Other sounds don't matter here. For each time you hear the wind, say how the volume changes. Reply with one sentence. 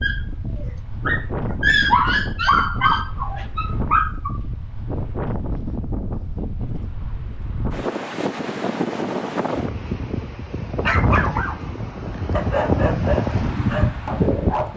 You can hear the wind from 0.0 to 14.7 s, getting louder.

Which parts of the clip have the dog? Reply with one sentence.
You can hear the dog from 0.0 to 4.4 s and from 10.8 to 14.7 s.